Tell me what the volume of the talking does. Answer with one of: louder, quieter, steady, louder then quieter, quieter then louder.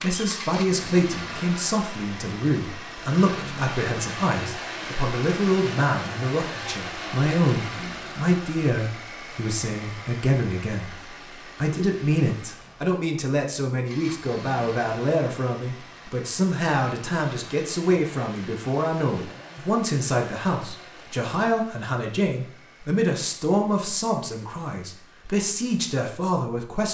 steady.